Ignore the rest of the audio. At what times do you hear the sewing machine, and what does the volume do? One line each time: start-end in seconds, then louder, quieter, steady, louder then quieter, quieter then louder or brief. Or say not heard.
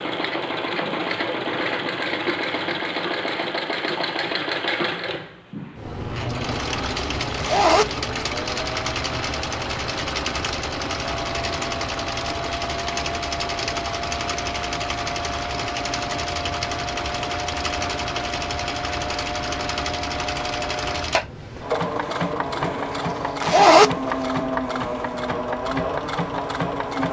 0.0-27.0 steady.